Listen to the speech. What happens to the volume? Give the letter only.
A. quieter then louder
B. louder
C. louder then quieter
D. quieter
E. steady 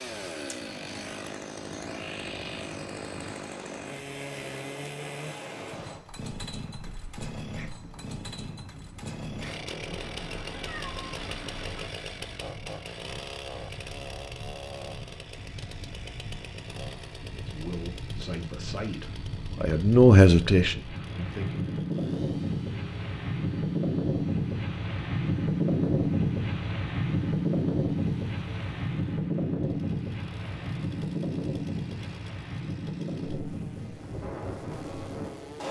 C.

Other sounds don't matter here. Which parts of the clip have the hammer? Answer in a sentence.
The hammer can't be heard in this clip.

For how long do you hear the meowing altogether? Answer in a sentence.
You can hear the meowing for 2 seconds altogether.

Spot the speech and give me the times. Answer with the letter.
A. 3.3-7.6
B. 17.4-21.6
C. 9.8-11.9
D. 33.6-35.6
B.